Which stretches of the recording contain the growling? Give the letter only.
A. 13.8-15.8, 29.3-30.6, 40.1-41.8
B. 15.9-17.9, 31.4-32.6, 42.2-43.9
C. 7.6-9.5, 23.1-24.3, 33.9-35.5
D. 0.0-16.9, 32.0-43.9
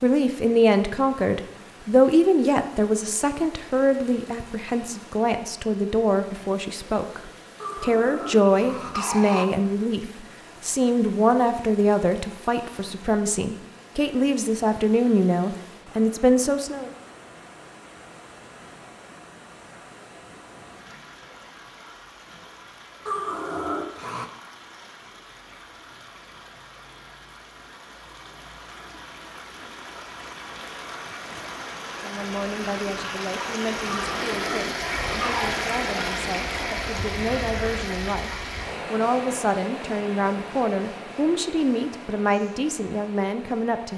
C.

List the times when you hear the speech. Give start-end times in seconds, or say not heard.
0.0-16.9, 32.0-43.9.